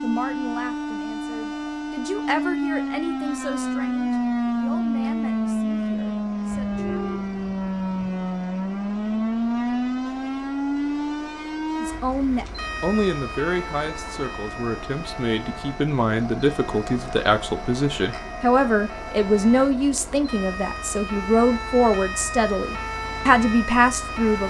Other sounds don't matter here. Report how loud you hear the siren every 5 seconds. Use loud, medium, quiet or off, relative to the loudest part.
loud, loud, medium, quiet, medium.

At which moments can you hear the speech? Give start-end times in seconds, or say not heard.
0.0-7.0, 11.8-24.4.